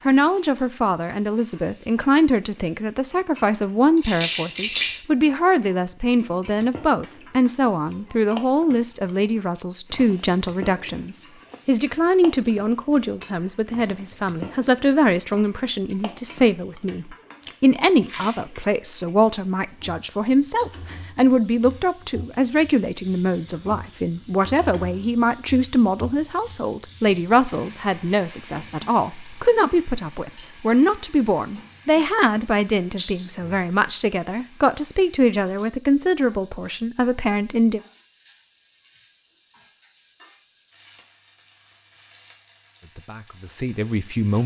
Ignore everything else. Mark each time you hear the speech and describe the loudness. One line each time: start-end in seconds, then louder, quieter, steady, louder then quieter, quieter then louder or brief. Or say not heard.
0.1-37.8 steady
42.8-44.4 brief.